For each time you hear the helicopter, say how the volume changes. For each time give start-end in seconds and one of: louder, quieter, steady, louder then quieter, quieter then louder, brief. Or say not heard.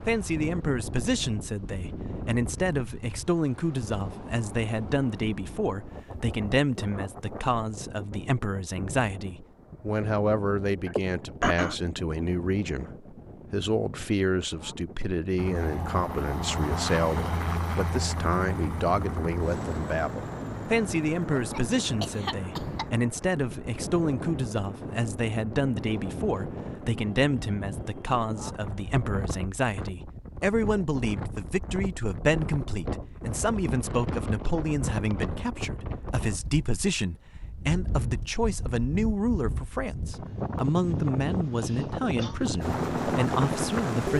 15.3-29.1 quieter
42.6-44.1 brief.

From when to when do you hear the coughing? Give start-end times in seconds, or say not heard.
10.8-11.8, 21.3-22.9, 41.5-42.4.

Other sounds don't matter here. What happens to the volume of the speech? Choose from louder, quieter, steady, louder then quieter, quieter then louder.
steady.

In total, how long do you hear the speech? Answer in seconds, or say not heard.
44 s.